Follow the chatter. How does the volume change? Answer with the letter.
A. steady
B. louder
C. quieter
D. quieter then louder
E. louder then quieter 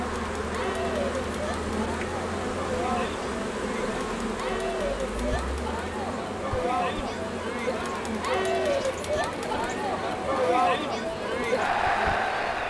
B.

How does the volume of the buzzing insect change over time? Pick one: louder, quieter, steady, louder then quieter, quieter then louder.
quieter.